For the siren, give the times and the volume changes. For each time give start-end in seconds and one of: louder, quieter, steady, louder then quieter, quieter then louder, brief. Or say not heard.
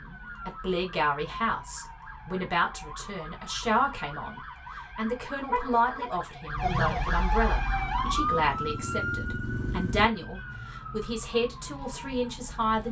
0.0-12.8 louder then quieter.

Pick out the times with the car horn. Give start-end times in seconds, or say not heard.
5.5-6.1.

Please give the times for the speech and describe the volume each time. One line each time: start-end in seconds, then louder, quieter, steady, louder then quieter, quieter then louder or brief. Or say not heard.
0.0-12.8 steady.